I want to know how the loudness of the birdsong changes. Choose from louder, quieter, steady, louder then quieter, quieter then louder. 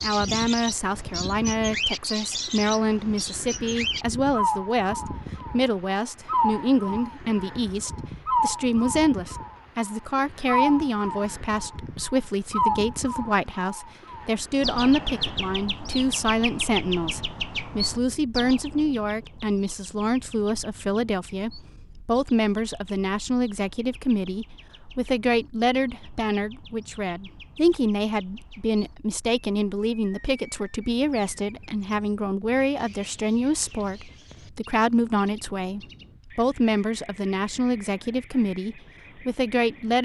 quieter.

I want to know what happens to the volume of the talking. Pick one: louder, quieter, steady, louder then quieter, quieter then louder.
steady.